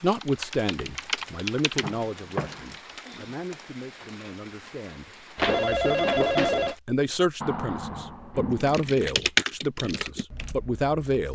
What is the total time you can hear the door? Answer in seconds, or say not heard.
3 s.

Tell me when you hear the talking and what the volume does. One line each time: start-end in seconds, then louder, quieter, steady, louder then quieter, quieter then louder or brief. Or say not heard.
0.0-11.2 quieter then louder.